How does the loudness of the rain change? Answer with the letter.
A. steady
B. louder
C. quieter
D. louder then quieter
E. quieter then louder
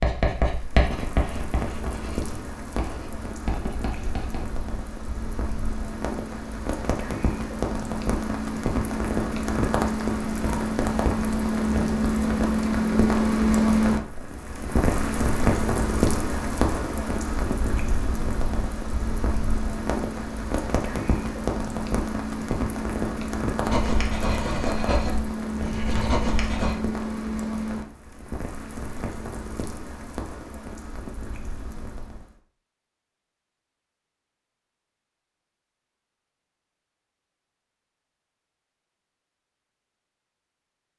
D.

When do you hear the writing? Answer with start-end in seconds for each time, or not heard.
0.0-4.7, 23.6-26.8.